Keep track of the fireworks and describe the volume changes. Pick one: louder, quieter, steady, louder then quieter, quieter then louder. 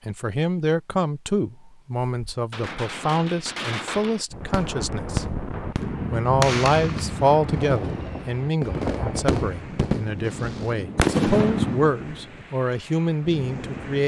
louder.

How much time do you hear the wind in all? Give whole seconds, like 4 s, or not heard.
10 s.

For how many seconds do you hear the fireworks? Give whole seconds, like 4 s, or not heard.
10 s.